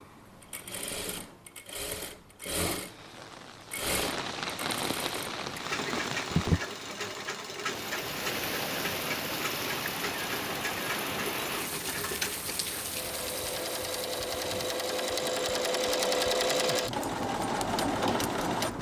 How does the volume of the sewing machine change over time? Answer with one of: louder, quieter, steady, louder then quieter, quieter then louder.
louder.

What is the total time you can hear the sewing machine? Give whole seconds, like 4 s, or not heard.
19 s.